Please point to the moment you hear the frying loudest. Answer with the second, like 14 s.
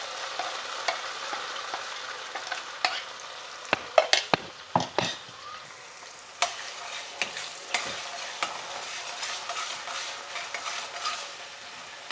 4 s.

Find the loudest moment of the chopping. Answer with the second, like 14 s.
4 s.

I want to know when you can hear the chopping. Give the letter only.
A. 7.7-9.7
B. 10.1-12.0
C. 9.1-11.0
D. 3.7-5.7
D.